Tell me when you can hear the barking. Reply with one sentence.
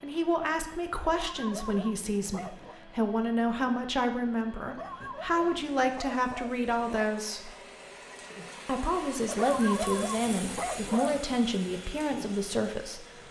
The barking can be heard from 1.0 to 2.8 s, from 4.7 to 7.1 s and from 9.2 to 11.2 s.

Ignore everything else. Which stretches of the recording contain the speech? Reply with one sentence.
You can hear the speech from 0.0 to 7.5 s and from 8.7 to 13.1 s.